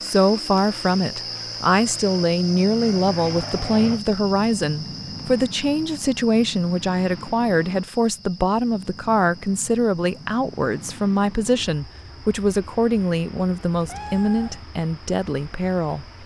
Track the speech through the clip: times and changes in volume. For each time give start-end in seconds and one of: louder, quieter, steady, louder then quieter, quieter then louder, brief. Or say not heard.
0.0-16.1 steady.